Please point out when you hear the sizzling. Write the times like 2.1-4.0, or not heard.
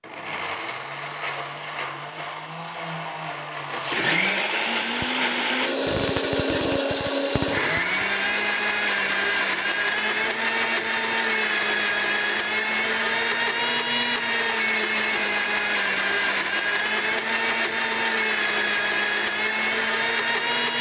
4.8-8.0.